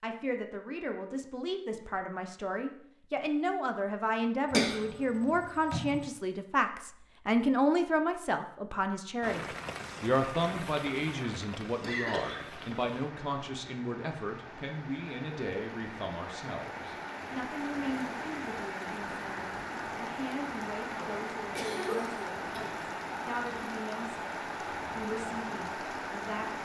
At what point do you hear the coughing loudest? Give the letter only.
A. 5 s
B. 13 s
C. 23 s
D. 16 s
A.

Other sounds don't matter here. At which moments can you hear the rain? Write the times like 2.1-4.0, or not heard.
9.2-26.6.